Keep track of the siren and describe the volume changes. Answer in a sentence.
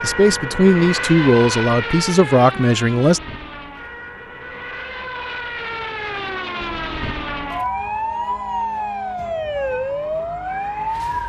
The loudness of the siren goes down, then up.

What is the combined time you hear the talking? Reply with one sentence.
The talking can be heard for 3 seconds in total.